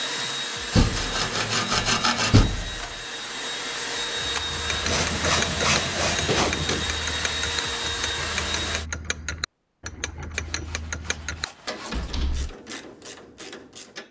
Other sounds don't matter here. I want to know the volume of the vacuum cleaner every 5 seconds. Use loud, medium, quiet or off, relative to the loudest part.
loud, loud, off.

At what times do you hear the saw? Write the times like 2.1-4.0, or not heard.
0.7-2.5, 4.8-6.8, 10.3-12.2.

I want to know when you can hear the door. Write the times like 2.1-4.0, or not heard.
0.8-2.9, 6.2-7.0, 11.9-12.6.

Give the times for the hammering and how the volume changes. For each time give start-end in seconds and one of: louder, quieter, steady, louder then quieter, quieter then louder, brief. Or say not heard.
not heard.